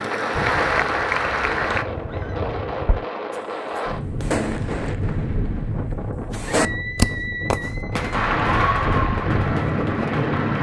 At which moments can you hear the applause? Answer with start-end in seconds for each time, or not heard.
0.0-1.9, 8.1-10.5.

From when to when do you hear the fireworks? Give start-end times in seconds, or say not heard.
0.3-10.2.